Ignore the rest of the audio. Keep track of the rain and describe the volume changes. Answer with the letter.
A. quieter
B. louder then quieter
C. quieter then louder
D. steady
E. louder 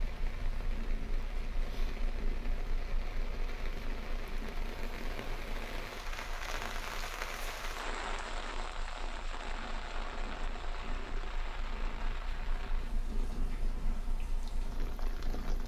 B.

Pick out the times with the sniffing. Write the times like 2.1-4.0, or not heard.
not heard.